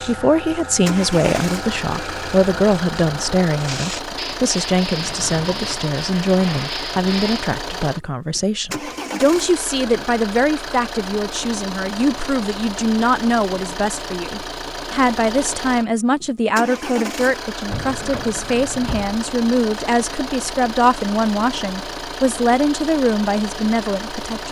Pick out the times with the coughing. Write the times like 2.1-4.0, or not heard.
not heard.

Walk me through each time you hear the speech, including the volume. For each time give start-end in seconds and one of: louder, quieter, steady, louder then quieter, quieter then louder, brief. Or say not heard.
0.0-24.4 steady.